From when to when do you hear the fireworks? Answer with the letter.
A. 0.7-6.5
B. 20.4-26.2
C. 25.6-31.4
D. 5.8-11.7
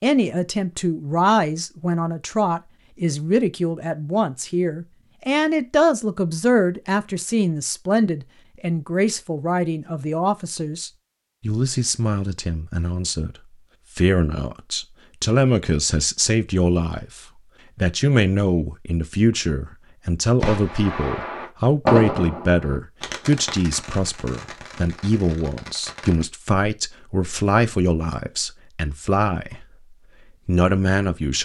B.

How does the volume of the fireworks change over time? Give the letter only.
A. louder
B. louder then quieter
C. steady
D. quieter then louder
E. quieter
B.